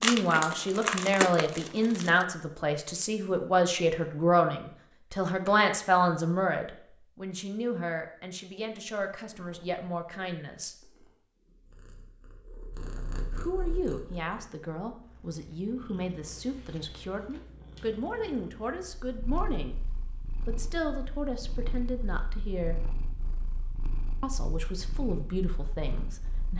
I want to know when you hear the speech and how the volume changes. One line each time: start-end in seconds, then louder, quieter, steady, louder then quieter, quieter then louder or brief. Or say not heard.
0.0-10.8 quieter
13.3-19.8 steady
20.4-22.8 brief
24.2-26.5 brief.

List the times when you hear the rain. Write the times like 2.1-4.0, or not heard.
not heard.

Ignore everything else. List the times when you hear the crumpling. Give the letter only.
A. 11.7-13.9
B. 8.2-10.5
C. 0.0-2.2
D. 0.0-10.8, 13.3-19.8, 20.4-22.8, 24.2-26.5
C.